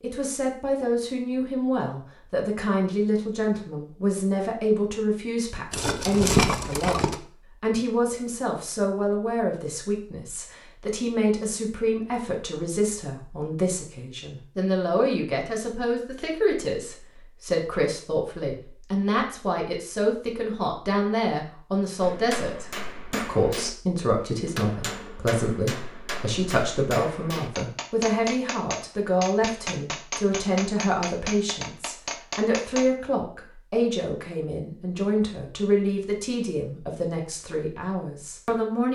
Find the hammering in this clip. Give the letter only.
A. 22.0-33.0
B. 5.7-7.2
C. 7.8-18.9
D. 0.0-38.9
A.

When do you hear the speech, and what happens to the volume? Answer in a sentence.
You can hear the speech from 0.0 to 38.9 s, at a steady volume.